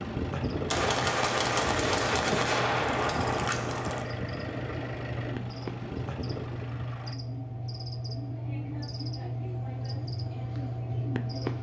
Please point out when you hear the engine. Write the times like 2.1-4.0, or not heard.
0.0-7.2.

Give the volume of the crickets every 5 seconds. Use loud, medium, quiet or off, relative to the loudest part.
medium, loud, loud.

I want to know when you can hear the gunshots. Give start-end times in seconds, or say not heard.
0.7-4.0.